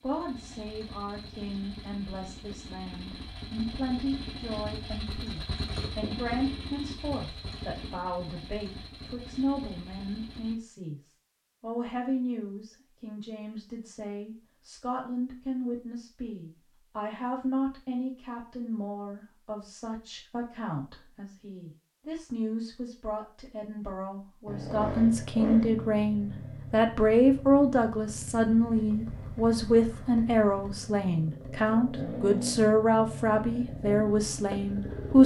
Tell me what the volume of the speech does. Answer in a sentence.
The loudness of the speech goes up.